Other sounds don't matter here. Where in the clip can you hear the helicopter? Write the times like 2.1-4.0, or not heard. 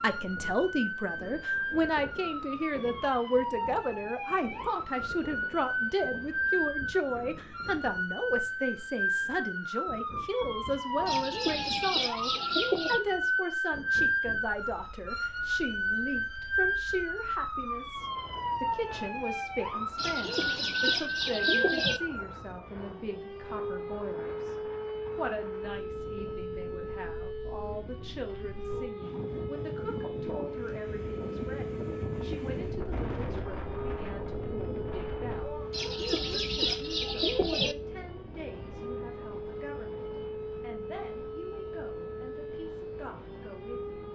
not heard.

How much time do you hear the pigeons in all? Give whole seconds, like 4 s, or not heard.
6 s.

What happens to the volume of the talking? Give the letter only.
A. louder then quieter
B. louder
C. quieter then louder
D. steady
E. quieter
E.